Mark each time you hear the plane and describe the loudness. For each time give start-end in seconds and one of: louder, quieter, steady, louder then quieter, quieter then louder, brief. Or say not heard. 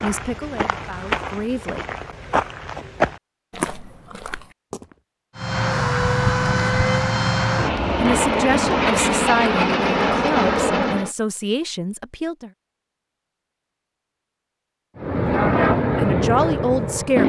5.3-11.1 steady
14.9-17.2 brief.